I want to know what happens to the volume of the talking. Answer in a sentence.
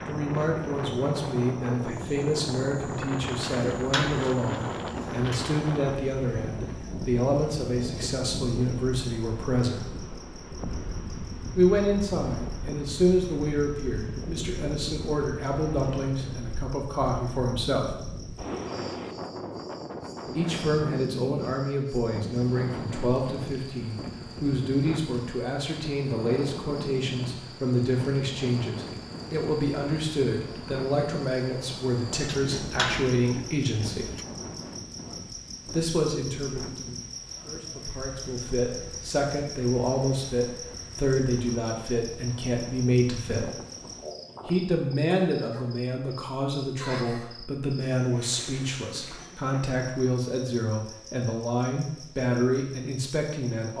The loudness of the talking stays about the same.